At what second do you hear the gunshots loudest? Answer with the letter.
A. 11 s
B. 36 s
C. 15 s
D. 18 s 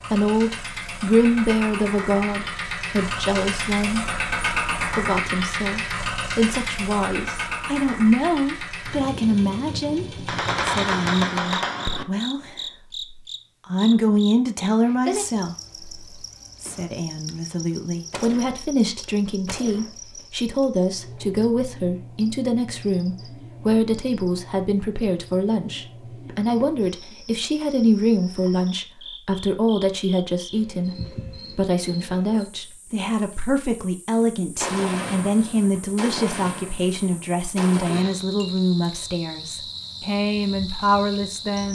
A.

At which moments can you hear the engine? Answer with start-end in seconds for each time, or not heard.
0.0-11.3.